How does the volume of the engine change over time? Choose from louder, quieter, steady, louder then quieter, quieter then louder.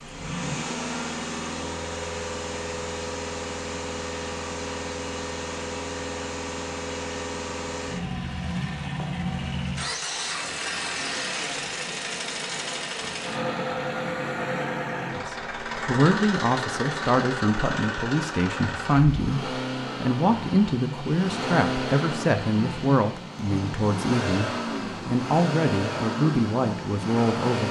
steady.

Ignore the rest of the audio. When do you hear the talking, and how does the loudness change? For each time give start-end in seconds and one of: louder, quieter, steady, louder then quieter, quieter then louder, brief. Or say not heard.
15.1-27.6 steady.